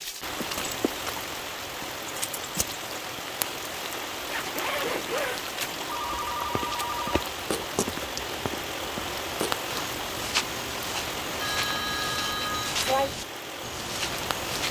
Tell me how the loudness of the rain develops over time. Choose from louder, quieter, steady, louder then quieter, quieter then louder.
steady.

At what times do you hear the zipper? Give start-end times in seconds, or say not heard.
4.2-5.8.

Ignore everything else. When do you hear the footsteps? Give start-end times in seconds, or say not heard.
6.1-14.6.